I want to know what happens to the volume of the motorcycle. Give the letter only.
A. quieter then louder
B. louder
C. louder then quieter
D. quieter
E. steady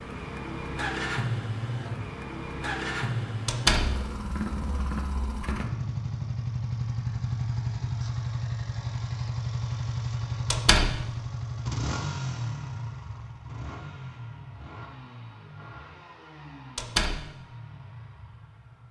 D.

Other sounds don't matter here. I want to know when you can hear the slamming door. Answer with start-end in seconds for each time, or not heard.
3.5-4.0, 10.5-10.9, 16.8-17.2.